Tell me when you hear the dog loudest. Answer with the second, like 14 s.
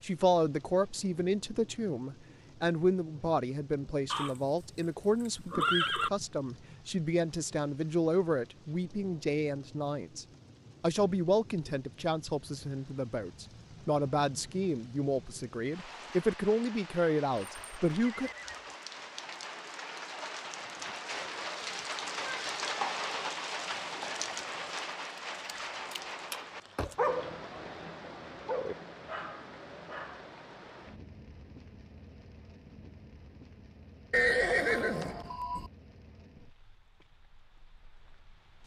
27 s.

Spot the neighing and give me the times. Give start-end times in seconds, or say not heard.
4.1-6.1, 17.4-18.7, 34.1-35.7.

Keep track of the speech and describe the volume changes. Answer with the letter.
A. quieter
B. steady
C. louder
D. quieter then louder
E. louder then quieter
B.